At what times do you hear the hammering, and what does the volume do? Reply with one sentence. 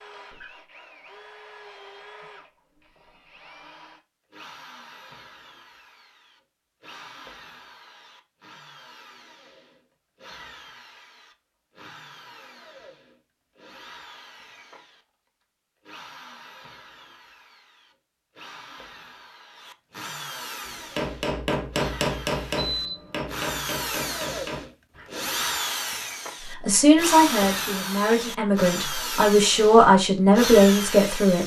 You can hear the hammering from 20.6 to 25.3 s, getting quieter.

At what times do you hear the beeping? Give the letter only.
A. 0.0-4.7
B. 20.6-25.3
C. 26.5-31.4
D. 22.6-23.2
D.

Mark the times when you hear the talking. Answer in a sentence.
You can hear the talking from 26.5 to 31.4 s.